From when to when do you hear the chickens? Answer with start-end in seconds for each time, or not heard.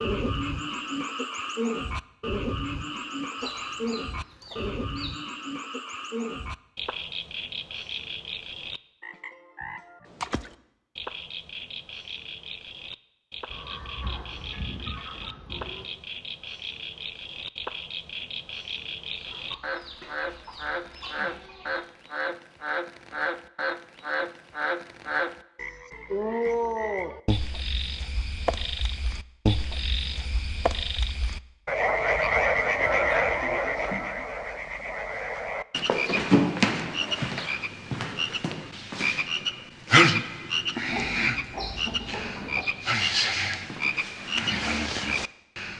3.4-5.2, 13.5-15.9, 19.1-21.9, 32.6-34.4, 40.9-42.6.